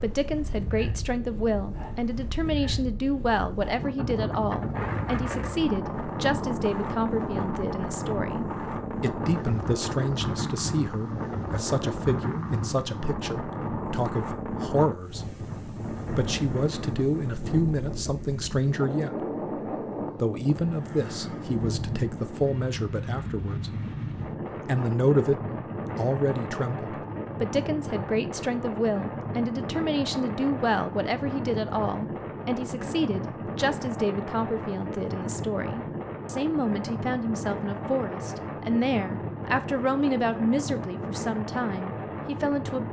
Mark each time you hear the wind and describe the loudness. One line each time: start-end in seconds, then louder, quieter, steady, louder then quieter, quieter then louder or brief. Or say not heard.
0.0-42.8 steady.